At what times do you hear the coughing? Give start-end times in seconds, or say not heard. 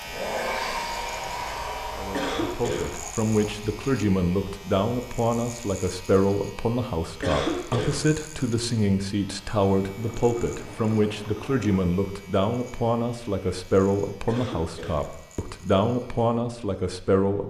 2.1-2.9, 7.2-8.0, 14.2-15.1.